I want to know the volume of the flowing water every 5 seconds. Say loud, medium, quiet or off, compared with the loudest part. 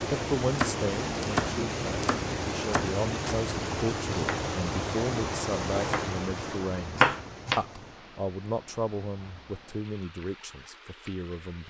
loud, medium, quiet.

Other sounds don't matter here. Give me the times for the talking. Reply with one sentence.
The talking can be heard from 0.1 to 11.6 s.